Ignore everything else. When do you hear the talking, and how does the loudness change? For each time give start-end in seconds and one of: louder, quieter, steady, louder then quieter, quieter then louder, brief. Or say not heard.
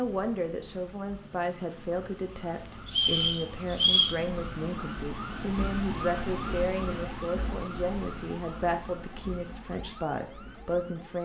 0.0-11.1 steady.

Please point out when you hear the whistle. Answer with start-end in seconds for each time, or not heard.
2.9-4.2.